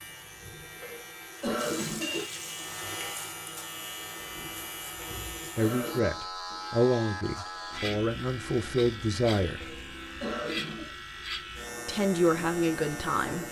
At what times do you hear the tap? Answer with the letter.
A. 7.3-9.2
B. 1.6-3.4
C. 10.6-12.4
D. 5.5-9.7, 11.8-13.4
B.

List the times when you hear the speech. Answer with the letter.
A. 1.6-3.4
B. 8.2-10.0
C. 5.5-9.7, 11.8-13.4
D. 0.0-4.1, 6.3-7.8
C.